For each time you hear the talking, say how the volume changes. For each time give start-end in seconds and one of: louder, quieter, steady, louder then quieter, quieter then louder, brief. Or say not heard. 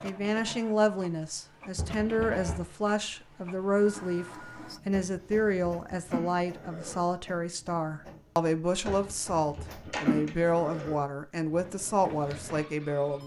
0.0-13.2 steady.